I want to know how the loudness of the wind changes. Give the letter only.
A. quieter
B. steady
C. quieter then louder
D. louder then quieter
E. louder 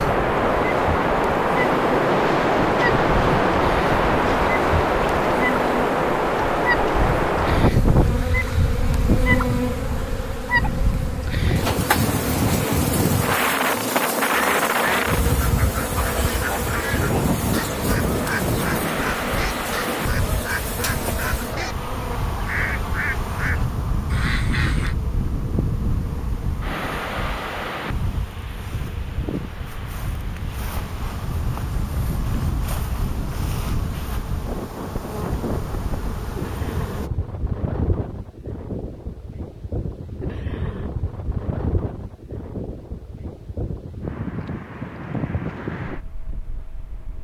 A.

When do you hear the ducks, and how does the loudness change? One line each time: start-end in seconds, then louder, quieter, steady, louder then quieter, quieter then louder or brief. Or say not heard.
14.3-24.9 steady.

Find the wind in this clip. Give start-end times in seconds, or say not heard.
0.0-47.1.